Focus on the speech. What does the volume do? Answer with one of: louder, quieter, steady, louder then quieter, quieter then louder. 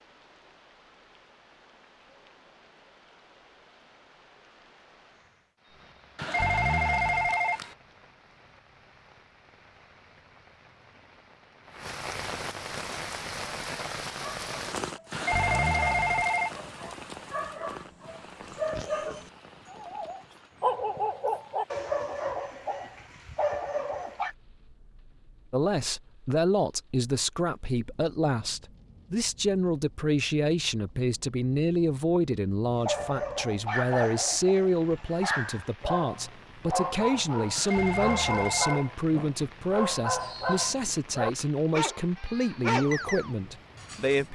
steady.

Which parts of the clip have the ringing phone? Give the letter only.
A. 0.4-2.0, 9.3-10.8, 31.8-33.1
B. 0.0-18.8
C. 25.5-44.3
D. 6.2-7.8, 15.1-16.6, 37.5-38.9
D.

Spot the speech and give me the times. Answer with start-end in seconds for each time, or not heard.
25.5-44.3.